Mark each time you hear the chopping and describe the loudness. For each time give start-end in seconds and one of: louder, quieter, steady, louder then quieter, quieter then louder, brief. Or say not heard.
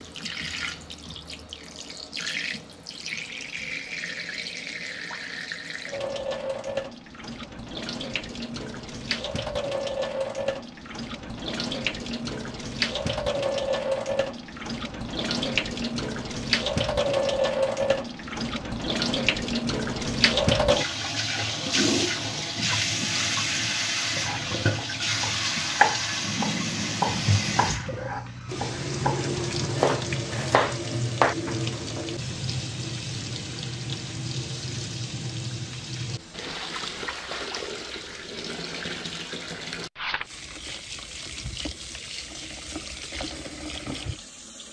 24.2-31.6 quieter then louder.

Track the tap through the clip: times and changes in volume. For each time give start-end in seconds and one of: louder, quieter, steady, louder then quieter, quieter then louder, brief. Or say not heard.
0.0-44.6 louder then quieter.